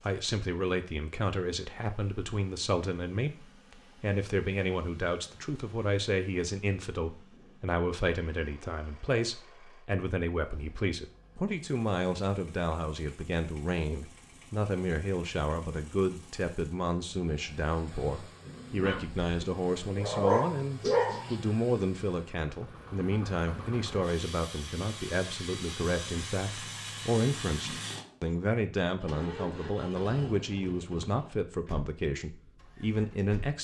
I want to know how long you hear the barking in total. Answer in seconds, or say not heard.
3 s.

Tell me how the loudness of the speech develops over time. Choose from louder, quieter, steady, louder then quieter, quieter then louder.
steady.